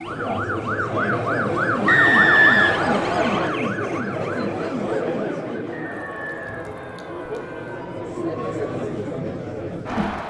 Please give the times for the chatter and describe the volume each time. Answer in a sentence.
The chatter can be heard from 0.0 to 10.2 s, getting quieter then louder.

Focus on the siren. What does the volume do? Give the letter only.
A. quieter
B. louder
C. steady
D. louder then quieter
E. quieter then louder
A.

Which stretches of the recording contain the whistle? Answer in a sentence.
You can hear the whistle from 1.9 to 3.5 s and from 5.7 to 7.5 s.